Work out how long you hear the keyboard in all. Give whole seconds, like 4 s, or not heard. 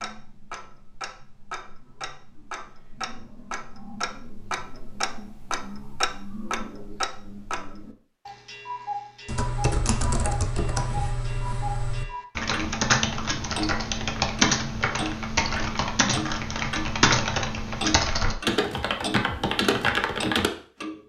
11 s.